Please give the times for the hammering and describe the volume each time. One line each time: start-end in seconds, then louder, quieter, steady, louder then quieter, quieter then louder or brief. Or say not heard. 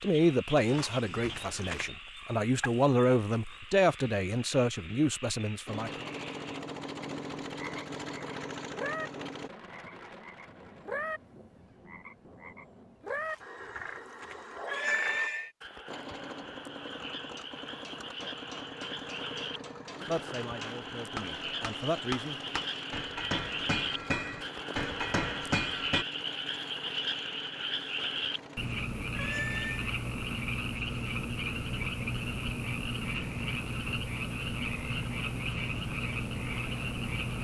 17.3-26.1 louder.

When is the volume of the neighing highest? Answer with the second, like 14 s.
15 s.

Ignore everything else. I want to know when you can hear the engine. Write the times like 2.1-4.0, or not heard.
5.7-9.5, 15.8-28.6.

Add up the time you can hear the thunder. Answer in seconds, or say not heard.
4 s.